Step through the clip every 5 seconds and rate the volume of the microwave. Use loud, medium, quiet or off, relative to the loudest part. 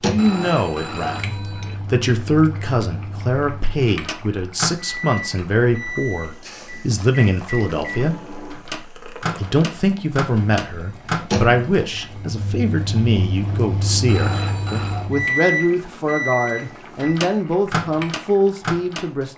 medium, medium, loud, loud.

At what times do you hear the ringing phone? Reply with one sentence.
The ringing phone can be heard from 0.1 to 1.8 s and from 14.1 to 15.1 s.